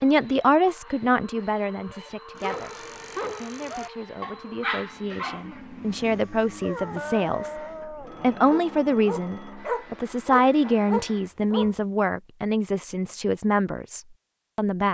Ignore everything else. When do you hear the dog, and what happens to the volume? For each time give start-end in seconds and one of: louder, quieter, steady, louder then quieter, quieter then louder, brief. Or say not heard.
2.4-11.8 louder.